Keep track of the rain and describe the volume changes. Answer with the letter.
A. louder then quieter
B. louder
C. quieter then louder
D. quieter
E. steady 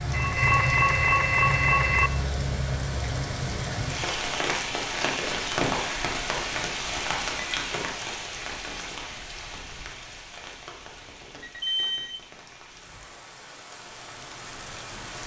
D.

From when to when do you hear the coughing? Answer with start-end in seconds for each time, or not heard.
not heard.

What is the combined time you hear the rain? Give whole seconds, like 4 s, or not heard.
15 s.